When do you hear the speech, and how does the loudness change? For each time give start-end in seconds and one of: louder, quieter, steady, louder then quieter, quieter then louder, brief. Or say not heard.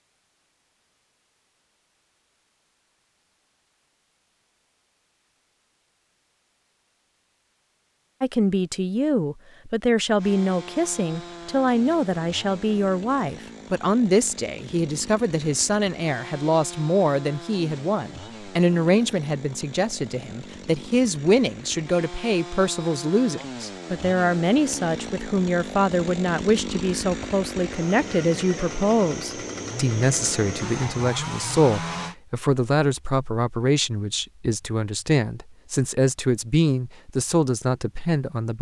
8.2-38.5 steady.